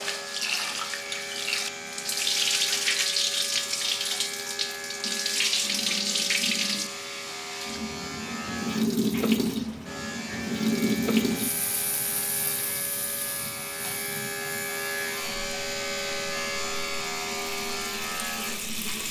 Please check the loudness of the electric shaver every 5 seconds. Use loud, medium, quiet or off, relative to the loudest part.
medium, medium, loud, loud.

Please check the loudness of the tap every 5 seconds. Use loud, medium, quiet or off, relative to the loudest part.
loud, loud, loud, medium.